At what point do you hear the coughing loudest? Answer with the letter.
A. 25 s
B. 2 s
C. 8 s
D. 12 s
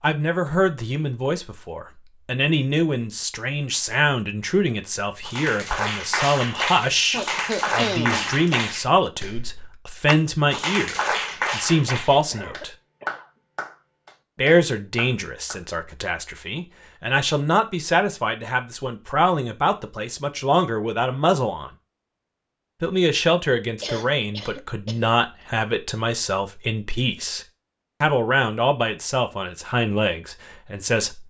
C.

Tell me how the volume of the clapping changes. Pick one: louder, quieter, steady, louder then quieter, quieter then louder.
quieter.